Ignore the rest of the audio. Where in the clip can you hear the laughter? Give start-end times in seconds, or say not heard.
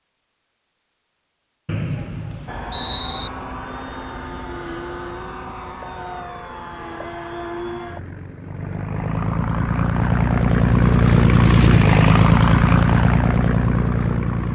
not heard.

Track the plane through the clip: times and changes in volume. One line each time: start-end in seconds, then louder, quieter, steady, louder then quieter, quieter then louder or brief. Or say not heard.
2.5-14.5 louder.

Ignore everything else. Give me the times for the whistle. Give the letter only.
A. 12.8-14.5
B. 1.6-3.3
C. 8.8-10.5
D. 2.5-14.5
B.